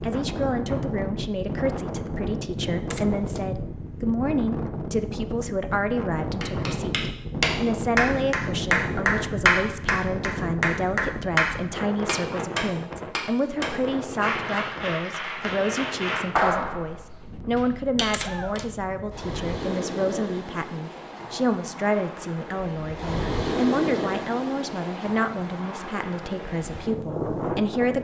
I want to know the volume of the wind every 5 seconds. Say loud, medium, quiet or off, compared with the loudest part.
loud, loud, loud, medium, loud, loud.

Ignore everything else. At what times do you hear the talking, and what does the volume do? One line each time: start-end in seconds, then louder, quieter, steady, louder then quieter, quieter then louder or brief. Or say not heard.
0.0-27.9 steady.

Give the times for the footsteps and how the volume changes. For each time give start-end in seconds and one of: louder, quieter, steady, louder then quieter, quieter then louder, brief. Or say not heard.
not heard.